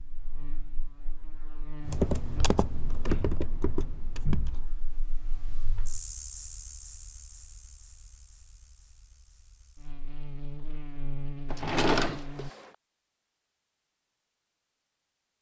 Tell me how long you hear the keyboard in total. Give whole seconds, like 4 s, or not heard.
3 s.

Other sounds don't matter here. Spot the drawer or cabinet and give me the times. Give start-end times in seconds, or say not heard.
11.5-12.7.